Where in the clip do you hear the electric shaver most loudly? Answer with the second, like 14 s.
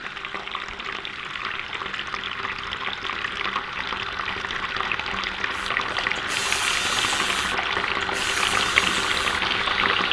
7 s.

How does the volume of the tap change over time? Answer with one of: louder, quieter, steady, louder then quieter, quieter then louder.
louder.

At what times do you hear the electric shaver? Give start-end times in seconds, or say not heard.
5.5-10.0.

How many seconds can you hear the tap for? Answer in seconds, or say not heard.
10 s.